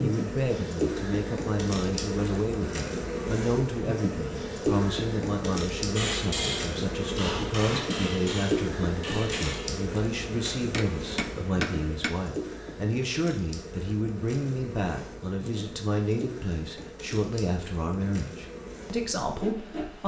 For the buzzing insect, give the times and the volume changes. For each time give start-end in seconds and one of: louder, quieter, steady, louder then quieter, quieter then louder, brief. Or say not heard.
0.0-20.0 quieter.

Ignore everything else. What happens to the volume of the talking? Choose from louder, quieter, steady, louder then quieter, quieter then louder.
steady.